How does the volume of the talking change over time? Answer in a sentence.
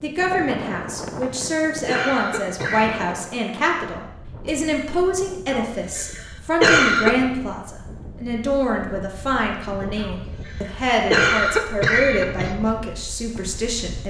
The volume of the talking stays about the same.